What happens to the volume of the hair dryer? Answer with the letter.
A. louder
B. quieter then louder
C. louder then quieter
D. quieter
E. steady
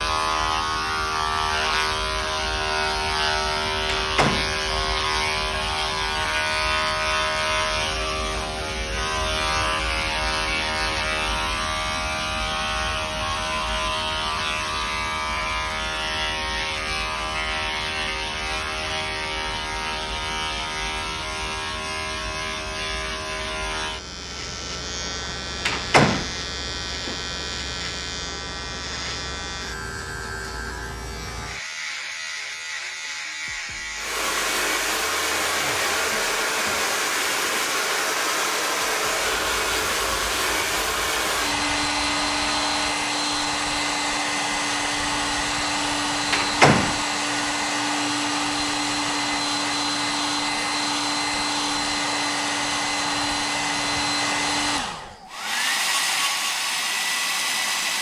E.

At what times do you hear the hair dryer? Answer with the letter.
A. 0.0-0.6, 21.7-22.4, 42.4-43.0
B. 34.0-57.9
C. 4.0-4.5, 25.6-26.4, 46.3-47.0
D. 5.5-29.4
B.